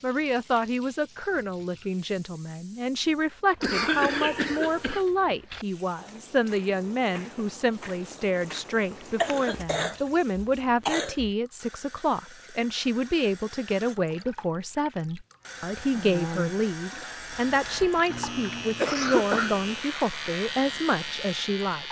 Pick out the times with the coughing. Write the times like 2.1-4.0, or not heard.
3.6-5.0, 9.2-11.3, 18.1-19.6.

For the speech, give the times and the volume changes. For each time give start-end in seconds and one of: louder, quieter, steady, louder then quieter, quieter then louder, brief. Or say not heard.
0.0-21.8 steady.